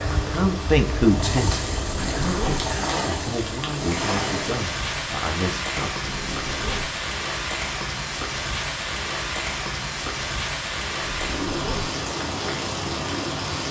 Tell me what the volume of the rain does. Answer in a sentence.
The volume of the rain goes up.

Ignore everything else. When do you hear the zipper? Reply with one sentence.
You can hear the zipper from 1.8 to 2.8 s, from 6.0 to 7.0 s and from 11.1 to 11.9 s.